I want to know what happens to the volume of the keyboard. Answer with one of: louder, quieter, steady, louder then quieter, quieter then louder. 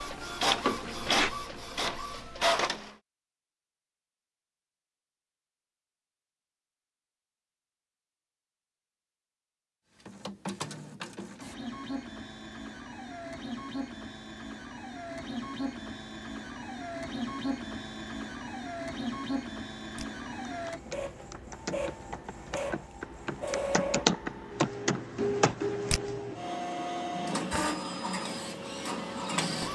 louder.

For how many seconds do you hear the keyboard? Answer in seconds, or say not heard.
6 s.